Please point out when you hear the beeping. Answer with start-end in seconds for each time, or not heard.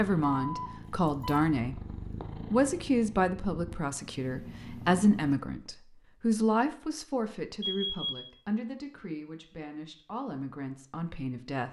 0.4-1.5, 7.6-8.3.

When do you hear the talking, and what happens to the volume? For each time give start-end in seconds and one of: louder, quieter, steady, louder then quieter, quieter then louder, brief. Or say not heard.
0.0-1.8 brief
2.5-11.6 quieter.